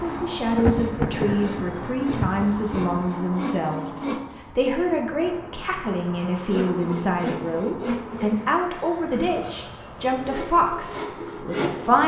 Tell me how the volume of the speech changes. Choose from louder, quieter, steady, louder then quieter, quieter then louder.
steady.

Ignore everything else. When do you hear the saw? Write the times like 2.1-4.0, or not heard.
0.0-4.2, 6.5-8.4, 10.1-12.0.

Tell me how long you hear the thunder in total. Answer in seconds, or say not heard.
3 s.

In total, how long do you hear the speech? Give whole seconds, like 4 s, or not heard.
12 s.